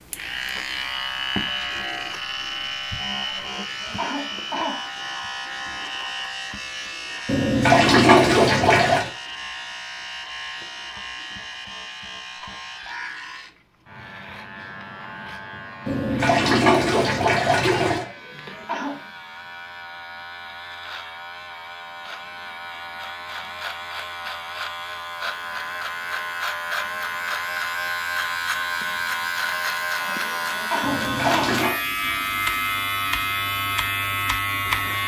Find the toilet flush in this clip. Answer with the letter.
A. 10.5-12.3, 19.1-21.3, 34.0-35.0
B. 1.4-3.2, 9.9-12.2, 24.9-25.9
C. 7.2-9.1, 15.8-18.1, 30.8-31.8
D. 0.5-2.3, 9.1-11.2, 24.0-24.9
C.